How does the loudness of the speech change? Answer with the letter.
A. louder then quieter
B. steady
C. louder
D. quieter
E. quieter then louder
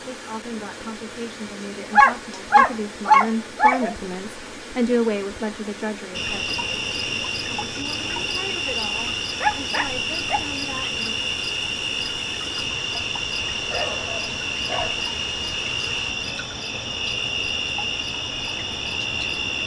A.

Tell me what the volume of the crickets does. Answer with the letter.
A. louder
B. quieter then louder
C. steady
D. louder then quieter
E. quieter
C.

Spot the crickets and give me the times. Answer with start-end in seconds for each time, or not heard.
6.1-19.6.